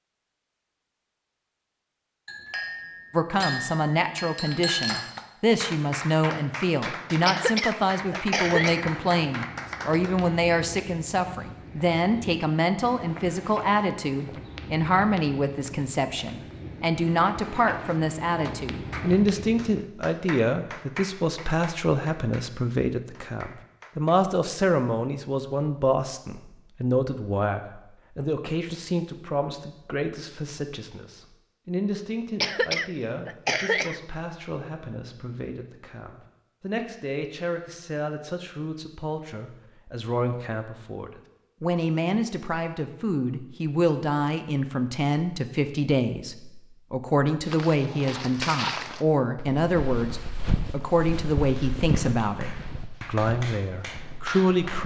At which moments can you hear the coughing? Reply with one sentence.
You can hear the coughing from 7.2 to 8.8 s and from 32.4 to 34.0 s.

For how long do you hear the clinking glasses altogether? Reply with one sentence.
You can hear the clinking glasses for 3 seconds altogether.